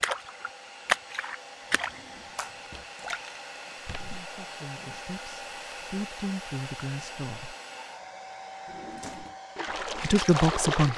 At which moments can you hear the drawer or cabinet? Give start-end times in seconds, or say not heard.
1.6-2.9, 8.7-9.4.